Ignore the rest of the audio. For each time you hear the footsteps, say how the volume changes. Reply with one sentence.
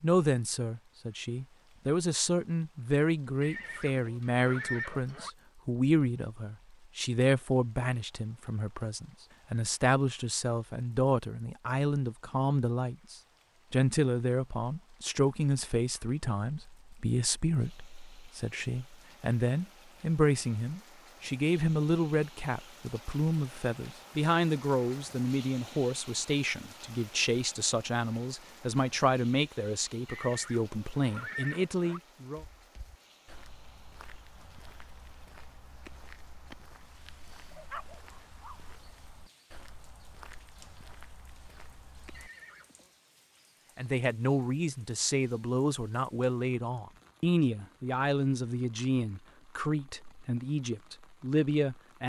The footsteps can be heard from 32.4 to 42.3 s, at a steady volume.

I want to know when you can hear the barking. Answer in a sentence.
The barking can be heard from 37.5 to 38.7 s.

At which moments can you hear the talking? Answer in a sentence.
You can hear the talking from 0.0 to 32.5 s and from 43.8 to 52.0 s.